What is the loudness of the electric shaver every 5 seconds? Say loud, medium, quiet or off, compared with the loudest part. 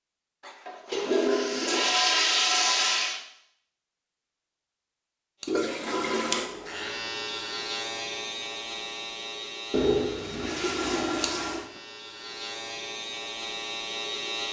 off, loud, loud.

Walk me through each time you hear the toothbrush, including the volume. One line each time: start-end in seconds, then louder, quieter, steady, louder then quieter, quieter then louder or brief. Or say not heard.
not heard.